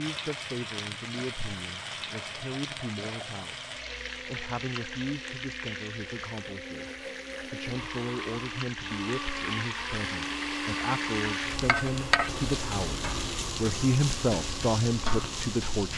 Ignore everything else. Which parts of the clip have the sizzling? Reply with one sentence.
You can hear the sizzling from 0.0 to 15.9 s.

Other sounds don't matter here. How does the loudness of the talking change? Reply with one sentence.
The loudness of the talking goes up.